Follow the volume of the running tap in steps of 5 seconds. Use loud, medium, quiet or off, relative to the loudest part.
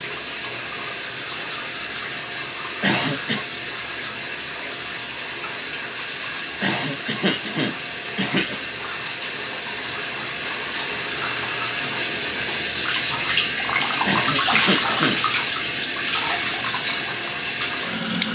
medium, medium, loud, loud.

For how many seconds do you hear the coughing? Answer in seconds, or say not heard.
4 s.